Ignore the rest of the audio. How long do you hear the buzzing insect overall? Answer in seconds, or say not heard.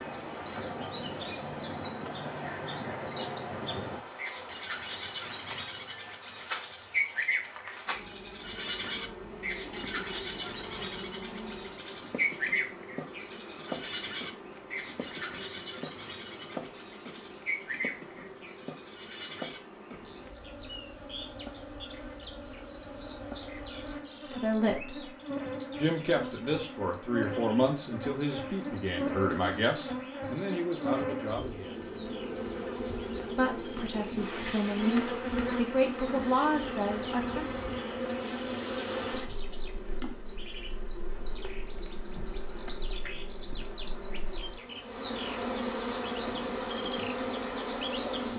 48 s.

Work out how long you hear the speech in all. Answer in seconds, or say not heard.
11 s.